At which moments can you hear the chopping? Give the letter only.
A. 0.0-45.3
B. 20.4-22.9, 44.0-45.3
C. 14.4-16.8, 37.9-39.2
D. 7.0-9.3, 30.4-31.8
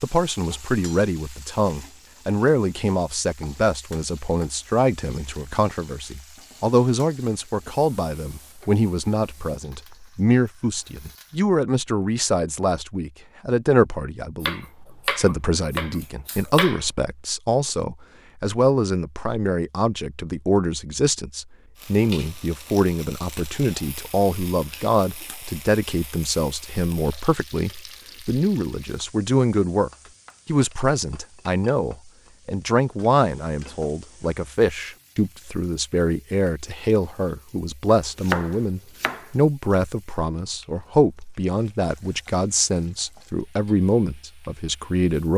C.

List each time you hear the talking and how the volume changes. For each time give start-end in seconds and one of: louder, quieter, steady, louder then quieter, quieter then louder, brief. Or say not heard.
0.0-45.3 steady.